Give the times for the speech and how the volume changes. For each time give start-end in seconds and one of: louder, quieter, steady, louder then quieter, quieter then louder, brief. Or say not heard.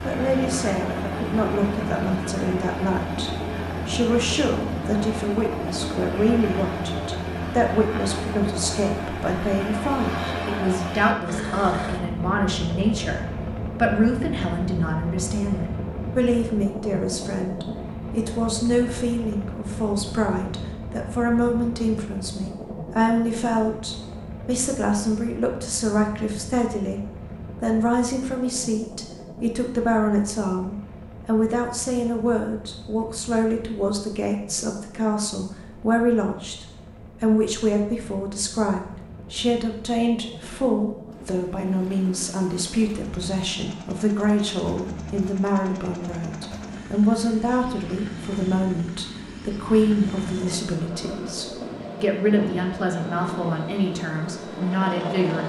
0.1-55.4 steady.